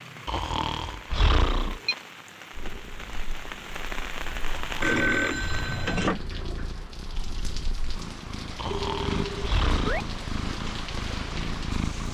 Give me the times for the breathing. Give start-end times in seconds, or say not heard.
0.2-1.8, 4.5-5.9, 8.6-10.1.